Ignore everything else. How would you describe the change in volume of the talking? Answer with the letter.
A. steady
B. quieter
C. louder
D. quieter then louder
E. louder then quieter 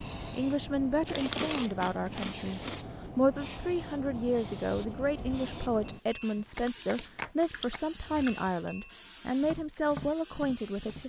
A.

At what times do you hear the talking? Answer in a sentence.
You can hear the talking from 0.3 to 11.0 s.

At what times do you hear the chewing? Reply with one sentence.
The chewing can be heard from 1.1 to 3.0 s and from 6.3 to 8.5 s.